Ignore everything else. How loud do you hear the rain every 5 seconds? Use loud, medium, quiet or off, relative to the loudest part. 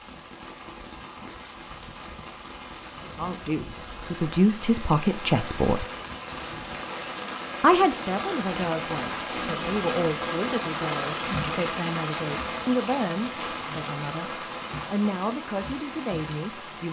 medium, loud, loud, medium.